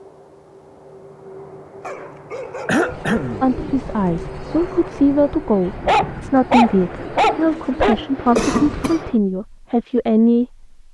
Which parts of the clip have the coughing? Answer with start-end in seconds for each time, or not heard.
2.6-3.5, 8.3-9.0.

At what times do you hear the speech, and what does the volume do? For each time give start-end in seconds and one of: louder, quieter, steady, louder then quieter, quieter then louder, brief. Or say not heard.
3.4-10.7 steady.